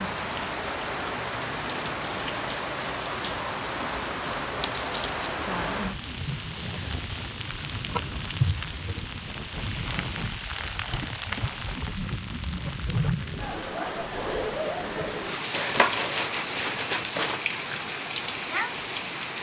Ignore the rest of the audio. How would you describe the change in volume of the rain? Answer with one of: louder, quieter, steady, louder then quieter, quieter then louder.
steady.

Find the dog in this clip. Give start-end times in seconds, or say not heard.
not heard.